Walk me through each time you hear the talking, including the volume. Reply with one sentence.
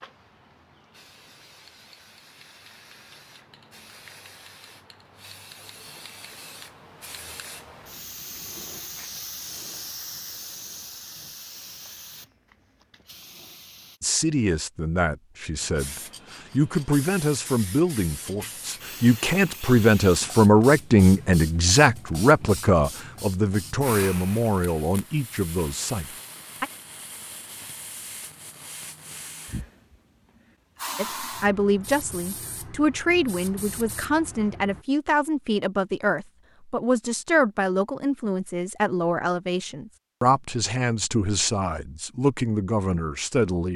The talking can be heard from 14.0 to 26.6 s, getting louder then quieter; and from 30.9 to 43.7 s, at a steady volume.